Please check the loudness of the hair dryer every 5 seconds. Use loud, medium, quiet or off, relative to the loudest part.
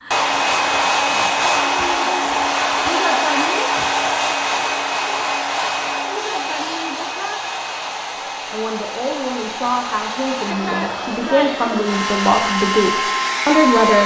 loud, medium, loud.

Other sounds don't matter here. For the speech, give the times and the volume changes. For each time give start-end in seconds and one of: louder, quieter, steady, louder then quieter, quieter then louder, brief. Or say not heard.
8.5-14.0 louder.